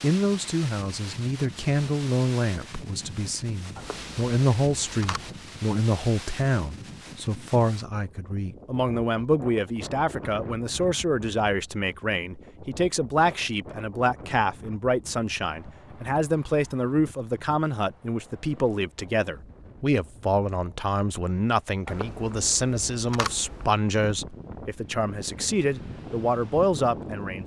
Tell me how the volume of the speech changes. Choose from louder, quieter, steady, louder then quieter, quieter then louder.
steady.